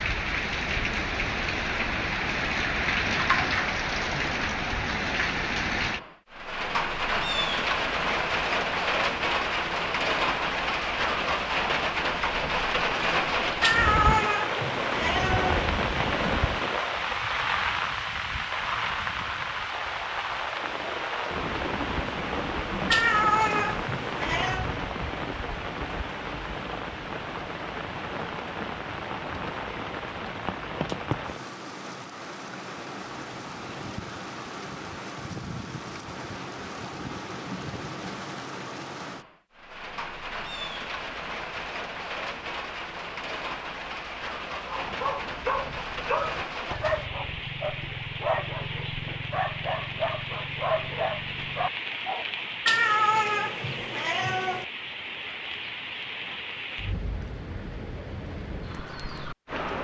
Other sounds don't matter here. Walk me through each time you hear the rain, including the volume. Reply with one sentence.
You can hear the rain from 0.0 to 59.8 s, getting quieter.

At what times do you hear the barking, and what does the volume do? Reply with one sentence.
You can hear the barking from 44.6 to 52.3 s, at a steady volume.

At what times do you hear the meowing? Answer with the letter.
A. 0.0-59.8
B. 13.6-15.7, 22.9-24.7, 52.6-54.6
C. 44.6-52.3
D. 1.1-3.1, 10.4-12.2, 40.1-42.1
B.